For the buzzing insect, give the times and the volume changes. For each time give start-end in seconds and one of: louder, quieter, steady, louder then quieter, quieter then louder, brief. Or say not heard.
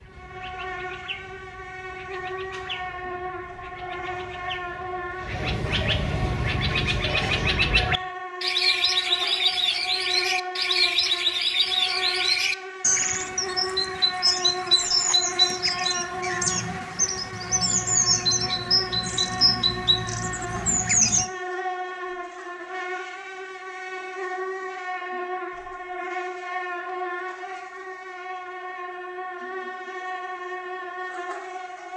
0.0-31.9 steady.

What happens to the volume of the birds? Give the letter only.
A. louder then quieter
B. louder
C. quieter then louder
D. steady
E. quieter
B.